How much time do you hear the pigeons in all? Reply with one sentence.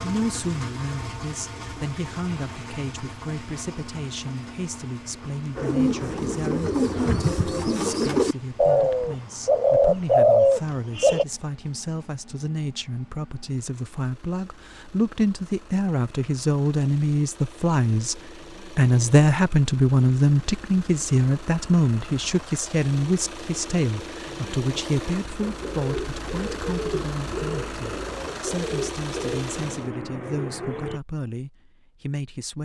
The pigeons can be heard for 11 seconds in total.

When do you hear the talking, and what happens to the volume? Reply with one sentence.
The talking can be heard from 0.0 to 32.6 s, getting louder then quieter.